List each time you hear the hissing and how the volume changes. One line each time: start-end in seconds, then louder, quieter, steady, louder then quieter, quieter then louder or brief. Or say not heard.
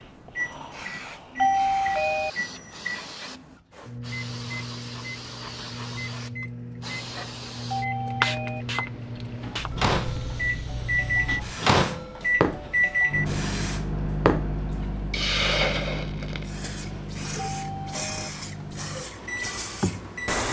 0.0-20.4 louder then quieter.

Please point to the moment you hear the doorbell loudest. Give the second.
2 s.